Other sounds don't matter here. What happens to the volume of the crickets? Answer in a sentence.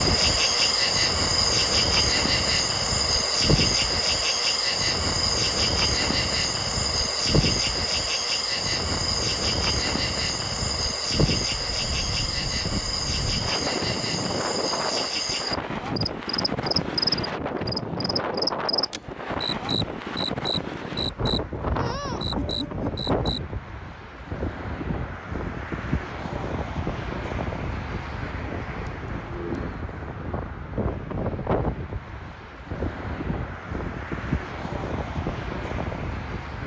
The volume of the crickets goes down.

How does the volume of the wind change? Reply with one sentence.
The loudness of the wind stays about the same.